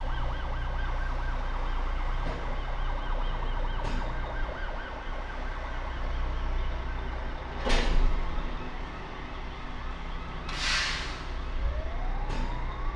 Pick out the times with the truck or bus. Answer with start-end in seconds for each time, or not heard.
0.0-12.9.